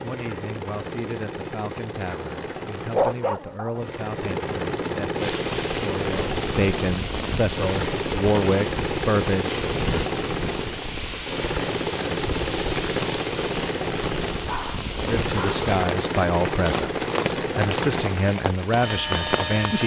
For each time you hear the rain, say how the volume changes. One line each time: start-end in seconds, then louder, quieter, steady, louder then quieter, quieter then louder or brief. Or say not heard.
5.2-19.8 steady.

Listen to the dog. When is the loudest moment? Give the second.
3 s.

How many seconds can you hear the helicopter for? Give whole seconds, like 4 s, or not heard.
20 s.